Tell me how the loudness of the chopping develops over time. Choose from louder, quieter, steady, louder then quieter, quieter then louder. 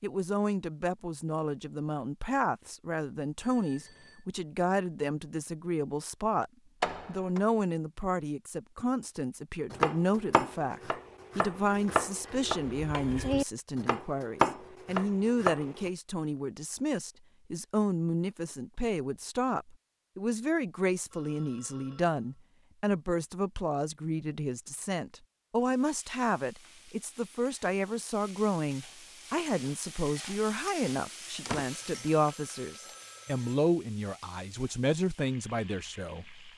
louder.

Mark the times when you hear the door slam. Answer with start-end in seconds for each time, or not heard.
6.8-7.4, 31.4-32.1.